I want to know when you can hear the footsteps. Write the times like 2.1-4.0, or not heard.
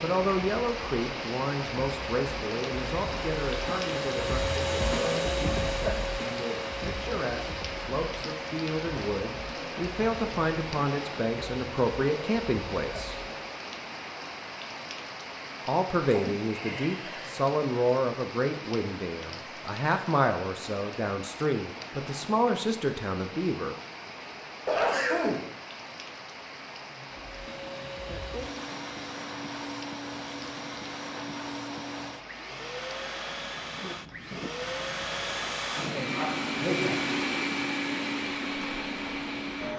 not heard.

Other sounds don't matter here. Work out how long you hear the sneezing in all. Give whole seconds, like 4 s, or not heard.
2 s.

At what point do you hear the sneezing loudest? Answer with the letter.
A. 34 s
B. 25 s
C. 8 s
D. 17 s
B.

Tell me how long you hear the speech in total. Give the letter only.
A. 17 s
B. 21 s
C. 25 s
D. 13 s
B.